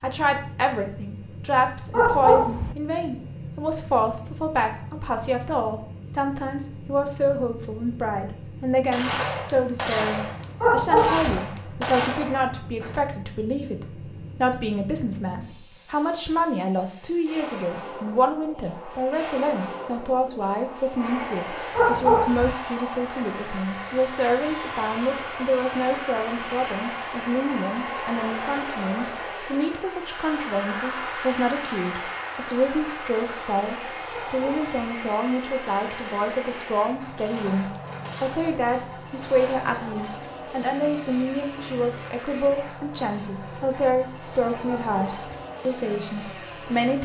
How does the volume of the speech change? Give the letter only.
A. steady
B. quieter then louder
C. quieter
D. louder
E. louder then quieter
A.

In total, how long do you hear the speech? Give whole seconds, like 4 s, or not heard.
47 s.